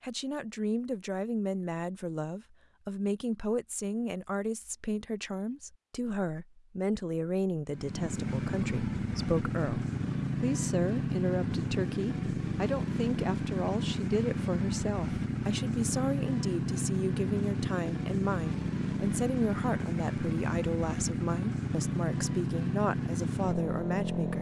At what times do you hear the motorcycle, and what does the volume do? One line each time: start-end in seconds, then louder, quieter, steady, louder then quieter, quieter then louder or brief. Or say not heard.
7.7-24.3 steady.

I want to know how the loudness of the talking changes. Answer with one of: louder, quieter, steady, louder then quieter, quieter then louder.
steady.